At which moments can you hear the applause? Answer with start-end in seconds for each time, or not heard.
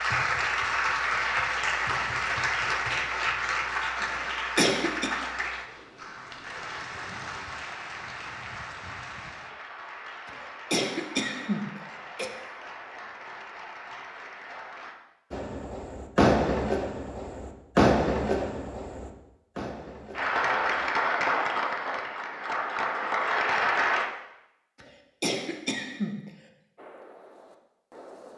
0.0-15.0, 20.1-24.1.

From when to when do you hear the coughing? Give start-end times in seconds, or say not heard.
4.2-5.1, 10.2-12.3, 24.8-26.3.